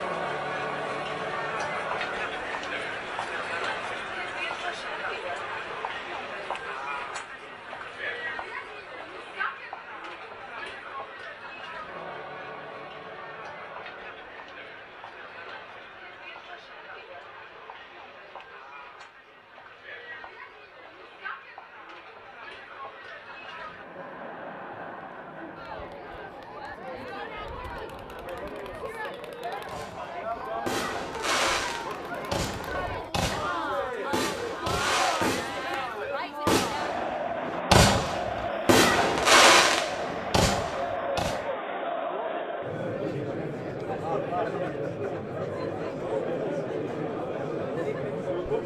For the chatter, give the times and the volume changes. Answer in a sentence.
You can hear the chatter from 0.0 to 48.6 s, getting quieter then louder.